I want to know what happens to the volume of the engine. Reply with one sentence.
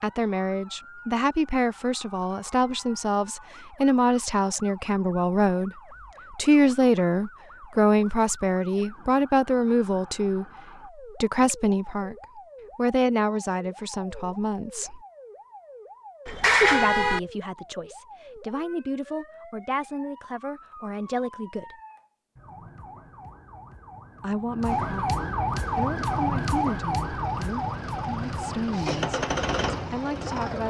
The volume of the engine goes up.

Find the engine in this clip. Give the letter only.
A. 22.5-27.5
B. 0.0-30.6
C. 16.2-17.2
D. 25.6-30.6
D.